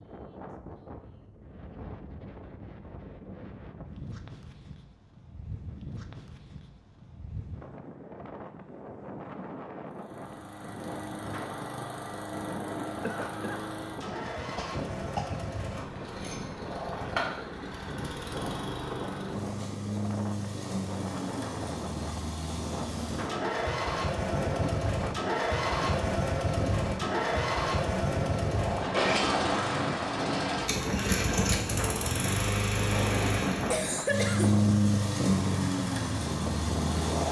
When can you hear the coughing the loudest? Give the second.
34 s.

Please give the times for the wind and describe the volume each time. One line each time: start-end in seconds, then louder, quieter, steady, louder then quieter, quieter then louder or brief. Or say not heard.
0.0-37.2 louder.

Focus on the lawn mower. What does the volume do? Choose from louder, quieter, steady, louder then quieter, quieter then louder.
louder.